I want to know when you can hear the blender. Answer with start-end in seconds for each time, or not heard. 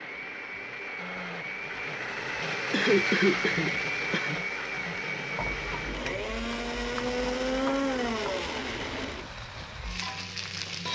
0.0-9.2.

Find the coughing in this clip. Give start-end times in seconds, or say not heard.
2.7-4.4.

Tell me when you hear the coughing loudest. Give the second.
3 s.